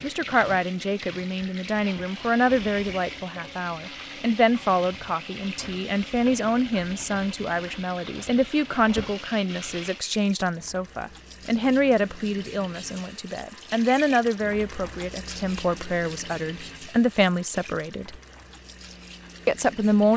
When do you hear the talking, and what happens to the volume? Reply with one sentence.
You can hear the talking from 0.0 to 18.1 s, at a steady volume; and briefly from 19.4 to 20.1 s.